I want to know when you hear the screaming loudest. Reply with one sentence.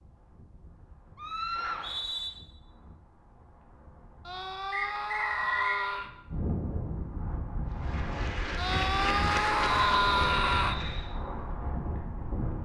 The loudest moment of the screaming is at 10 seconds.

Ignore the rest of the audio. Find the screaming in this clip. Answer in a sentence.
The screaming can be heard from 1.1 to 1.9 s, from 4.2 to 6.1 s and from 8.6 to 10.8 s.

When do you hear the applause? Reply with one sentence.
You can hear the applause from 7.7 to 11.2 s.